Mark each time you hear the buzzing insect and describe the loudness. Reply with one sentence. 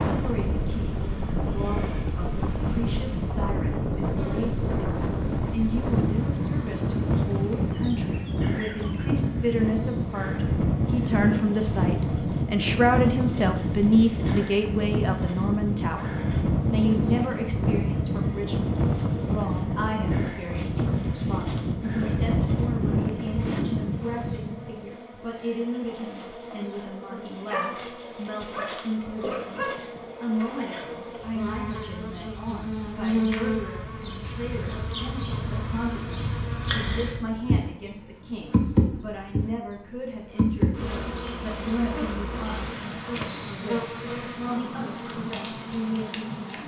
The buzzing insect can be heard from 0.0 to 46.6 s, getting louder.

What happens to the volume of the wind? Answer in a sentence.
The volume of the wind stays about the same.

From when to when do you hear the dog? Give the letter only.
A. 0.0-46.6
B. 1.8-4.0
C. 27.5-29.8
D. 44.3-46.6
C.